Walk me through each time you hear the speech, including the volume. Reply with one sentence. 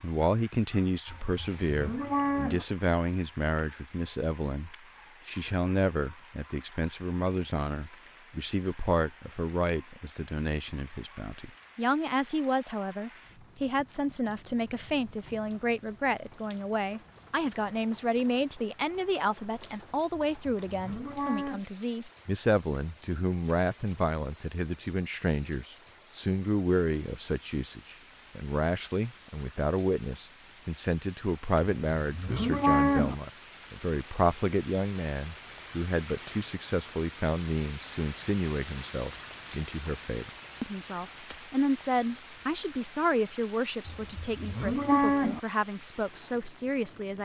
You can hear the speech from 0.0 to 47.2 s, at a steady volume.